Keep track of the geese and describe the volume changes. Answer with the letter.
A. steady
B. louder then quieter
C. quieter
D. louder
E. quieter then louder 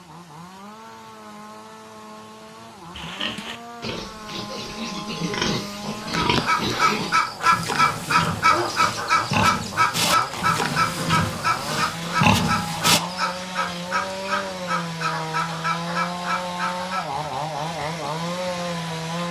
C.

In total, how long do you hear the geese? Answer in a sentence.
You can hear the geese for 11 seconds altogether.